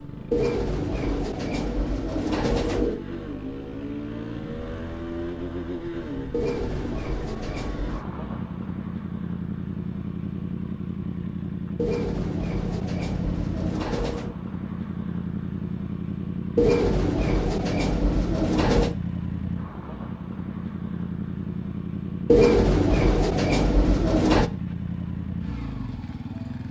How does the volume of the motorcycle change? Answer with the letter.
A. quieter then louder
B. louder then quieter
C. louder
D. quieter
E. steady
E.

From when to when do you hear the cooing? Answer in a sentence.
The cooing can be heard from 0.3 to 3.0 s, from 6.3 to 8.1 s, from 11.8 to 14.3 s, from 16.6 to 18.9 s and from 22.2 to 24.5 s.